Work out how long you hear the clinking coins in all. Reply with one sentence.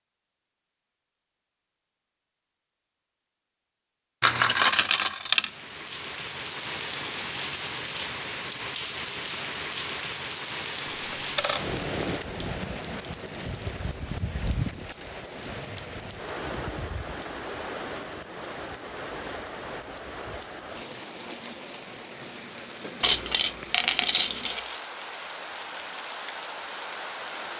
You can hear the clinking coins for 4 seconds altogether.